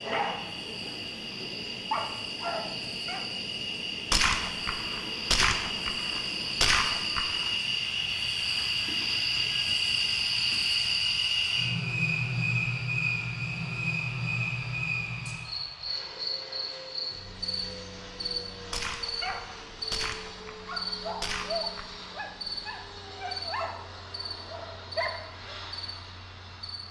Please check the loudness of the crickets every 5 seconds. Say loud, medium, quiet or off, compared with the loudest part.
medium, loud, loud, medium, medium, quiet.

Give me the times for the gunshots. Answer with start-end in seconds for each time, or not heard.
4.1-7.5, 18.7-22.1.